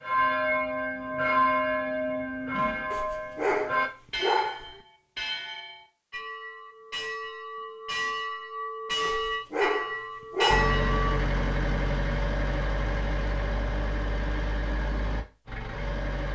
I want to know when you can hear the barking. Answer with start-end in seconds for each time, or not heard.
2.9-4.8, 9.0-10.8.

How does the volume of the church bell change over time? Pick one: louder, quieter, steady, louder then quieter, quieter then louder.
quieter then louder.